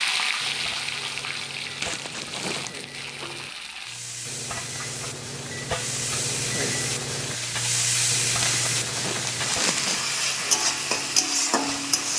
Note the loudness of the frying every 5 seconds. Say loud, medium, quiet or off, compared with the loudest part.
medium, loud, loud.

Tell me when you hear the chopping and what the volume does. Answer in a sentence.
The chopping can't be heard in this clip.